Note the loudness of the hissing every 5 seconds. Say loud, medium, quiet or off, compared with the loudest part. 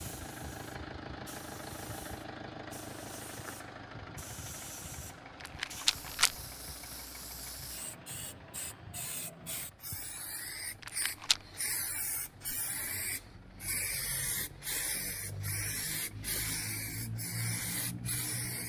quiet, medium, loud, loud.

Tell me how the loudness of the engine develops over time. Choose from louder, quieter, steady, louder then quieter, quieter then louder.
quieter.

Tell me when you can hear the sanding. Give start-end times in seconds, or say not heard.
not heard.